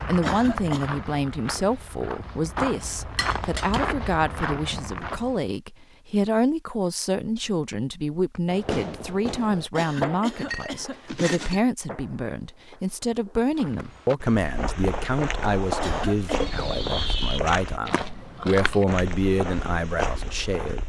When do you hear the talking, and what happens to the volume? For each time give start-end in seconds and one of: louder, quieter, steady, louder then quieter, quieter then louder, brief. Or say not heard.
0.0-20.8 steady.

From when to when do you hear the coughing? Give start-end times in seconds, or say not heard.
0.2-0.9, 9.8-11.0, 15.8-16.4.